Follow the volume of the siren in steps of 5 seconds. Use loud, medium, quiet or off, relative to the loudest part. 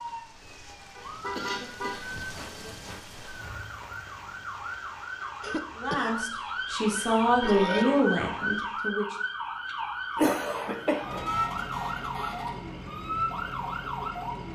medium, loud, loud.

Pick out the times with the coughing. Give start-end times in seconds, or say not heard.
1.4-2.8, 5.4-7.8, 10.2-11.2.